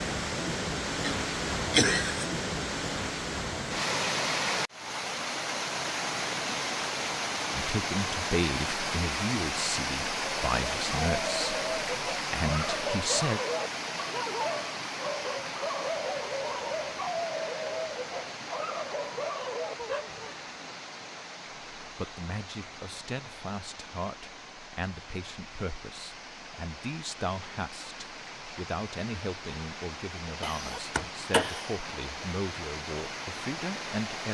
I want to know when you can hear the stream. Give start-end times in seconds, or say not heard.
0.0-34.2.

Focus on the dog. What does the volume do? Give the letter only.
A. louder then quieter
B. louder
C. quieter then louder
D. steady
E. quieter
D.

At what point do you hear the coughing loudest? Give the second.
2 s.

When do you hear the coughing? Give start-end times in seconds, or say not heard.
1.0-2.2, 30.4-31.8.